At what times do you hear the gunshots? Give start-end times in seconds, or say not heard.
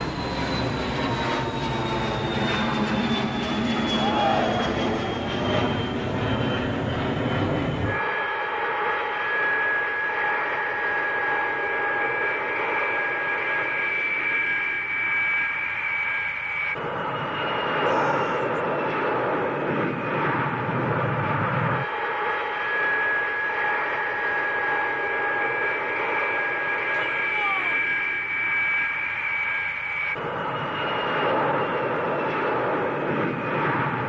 not heard.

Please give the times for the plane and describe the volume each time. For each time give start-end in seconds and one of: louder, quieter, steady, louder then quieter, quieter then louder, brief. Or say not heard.
0.0-34.0 steady.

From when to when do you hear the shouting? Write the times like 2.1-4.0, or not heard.
4.0-4.7, 17.8-18.6, 26.9-27.9.